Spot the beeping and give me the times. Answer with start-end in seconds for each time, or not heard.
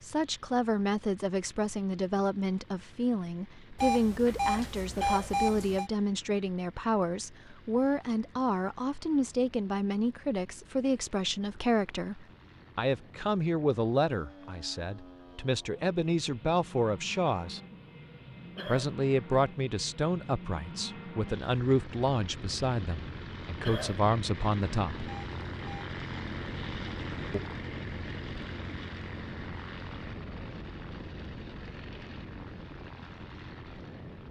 3.8-5.9, 25.1-25.9.